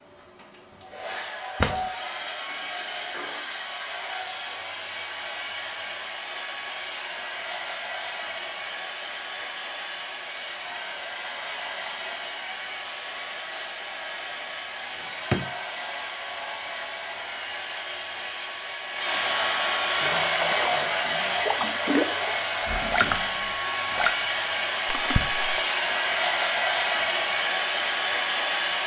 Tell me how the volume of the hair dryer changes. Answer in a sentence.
The loudness of the hair dryer goes up.